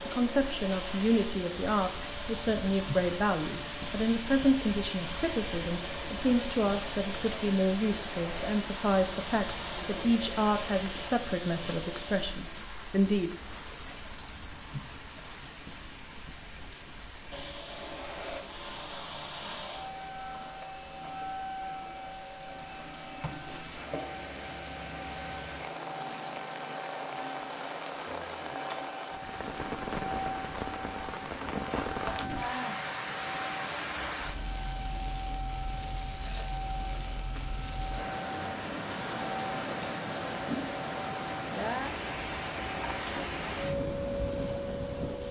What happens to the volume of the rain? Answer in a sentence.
The volume of the rain goes down, then up.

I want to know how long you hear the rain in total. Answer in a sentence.
You can hear the rain for 45 seconds altogether.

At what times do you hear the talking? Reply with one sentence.
The talking can be heard from 0.0 to 13.3 s.